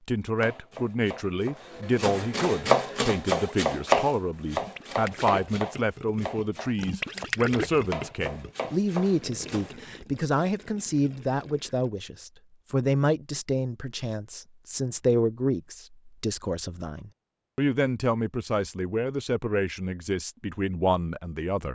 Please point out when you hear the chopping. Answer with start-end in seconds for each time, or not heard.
0.4-9.7.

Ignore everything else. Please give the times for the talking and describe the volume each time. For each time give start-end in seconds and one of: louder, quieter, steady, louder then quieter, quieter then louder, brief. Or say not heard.
0.1-21.7 steady.